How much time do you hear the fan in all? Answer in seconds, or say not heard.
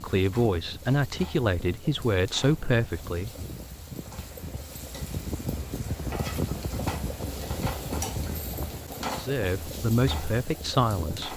11 s.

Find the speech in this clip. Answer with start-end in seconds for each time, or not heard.
0.0-3.3, 9.2-11.3.